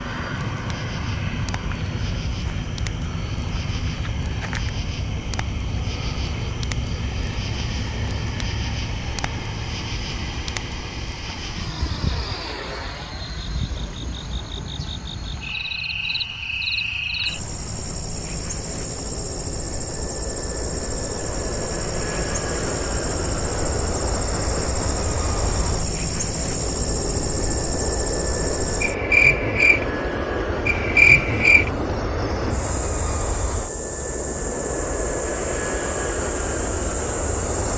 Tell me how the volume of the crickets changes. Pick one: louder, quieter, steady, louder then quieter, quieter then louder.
louder.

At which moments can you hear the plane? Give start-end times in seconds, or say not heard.
0.0-37.7.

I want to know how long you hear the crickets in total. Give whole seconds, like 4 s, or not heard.
38 s.